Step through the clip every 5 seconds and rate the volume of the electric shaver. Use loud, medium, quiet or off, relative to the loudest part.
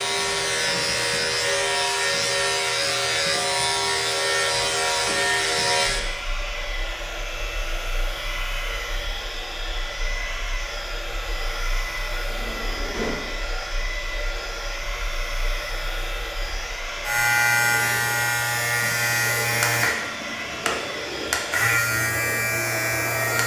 loud, medium, quiet, loud, loud.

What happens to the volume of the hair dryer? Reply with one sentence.
The volume of the hair dryer stays about the same.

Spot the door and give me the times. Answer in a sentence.
You can hear the door from 12.3 to 13.3 s.